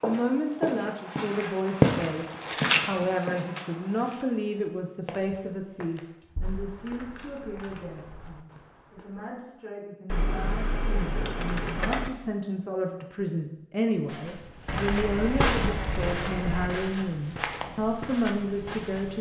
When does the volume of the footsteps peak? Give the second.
2 s.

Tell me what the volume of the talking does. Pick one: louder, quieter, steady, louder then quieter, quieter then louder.
quieter then louder.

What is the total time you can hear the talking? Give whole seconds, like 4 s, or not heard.
19 s.